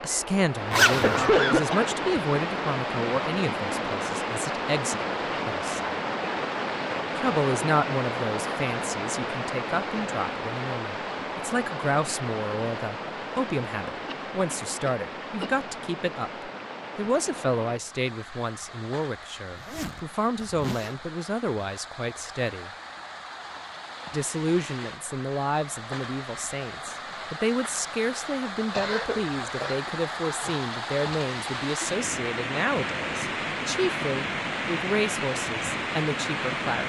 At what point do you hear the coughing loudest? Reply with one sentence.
The loudest moment of the coughing is at 1 second.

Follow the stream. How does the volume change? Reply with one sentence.
The volume of the stream goes down, then up.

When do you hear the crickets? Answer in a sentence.
The crickets can't be heard in this clip.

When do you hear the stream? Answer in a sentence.
You can hear the stream from 0.0 to 36.8 s.